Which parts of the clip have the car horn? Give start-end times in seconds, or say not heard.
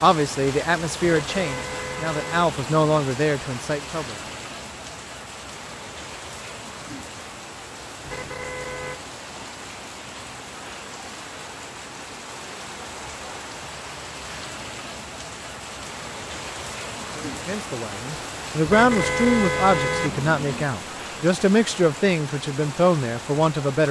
1.0-2.9, 8.0-9.0, 18.6-20.6.